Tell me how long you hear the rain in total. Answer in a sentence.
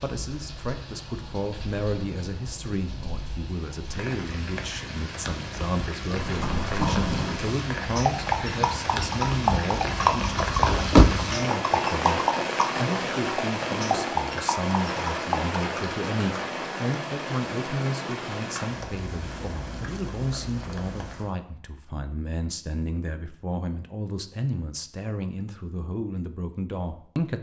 You can hear the rain for 21 seconds altogether.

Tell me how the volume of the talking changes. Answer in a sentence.
The volume of the talking stays about the same.